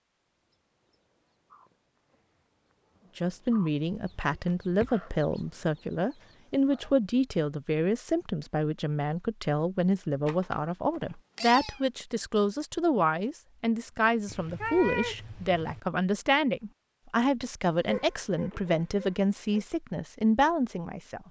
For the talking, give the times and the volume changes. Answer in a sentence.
You can hear the talking from 3.1 to 21.2 s, at a steady volume.